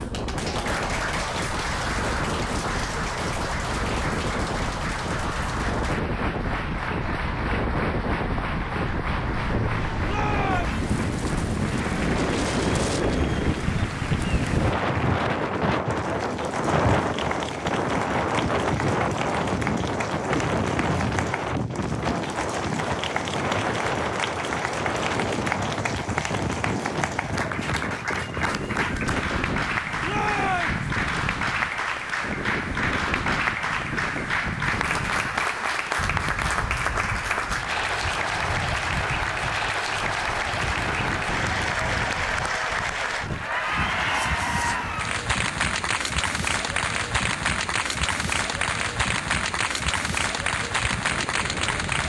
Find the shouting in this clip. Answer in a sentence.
You can hear the shouting from 10.1 to 10.8 s and from 30.0 to 30.8 s.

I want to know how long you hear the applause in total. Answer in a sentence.
You can hear the applause for 52 seconds altogether.